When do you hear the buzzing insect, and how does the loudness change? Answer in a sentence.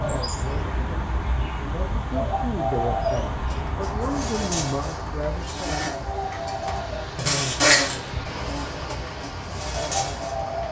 You can hear the buzzing insect from 3.5 to 10.6 s, getting louder then quieter.